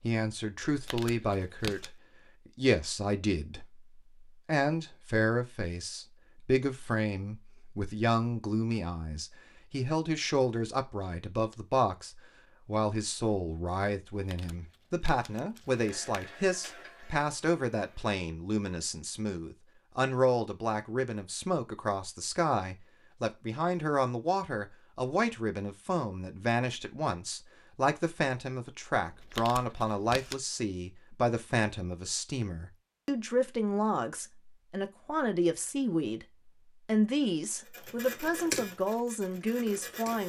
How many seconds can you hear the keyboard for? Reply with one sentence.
You can hear the keyboard for 2 seconds altogether.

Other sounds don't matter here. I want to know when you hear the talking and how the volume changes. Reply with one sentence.
The talking can be heard from 0.0 to 40.2 s, at a steady volume.